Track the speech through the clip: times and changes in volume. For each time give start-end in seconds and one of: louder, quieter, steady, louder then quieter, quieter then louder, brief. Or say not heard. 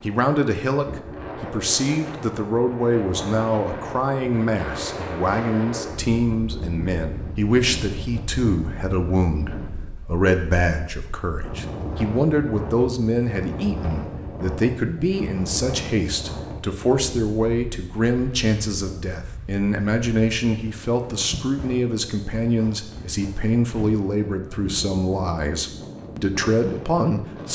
0.0-27.4 steady.